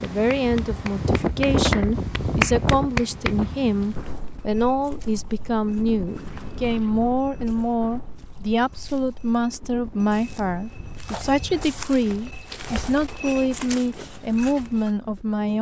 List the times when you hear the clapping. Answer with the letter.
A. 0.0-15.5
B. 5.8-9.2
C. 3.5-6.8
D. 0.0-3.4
D.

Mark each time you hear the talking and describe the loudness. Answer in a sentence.
You can hear the talking from 0.0 to 15.5 s, at a steady volume.